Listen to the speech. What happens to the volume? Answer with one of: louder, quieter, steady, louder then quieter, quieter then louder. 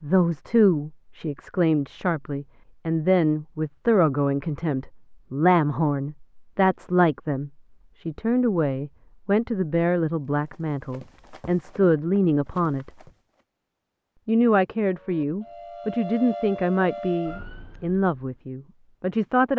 steady.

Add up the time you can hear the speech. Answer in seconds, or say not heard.
18 s.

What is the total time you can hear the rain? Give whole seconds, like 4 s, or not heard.
not heard.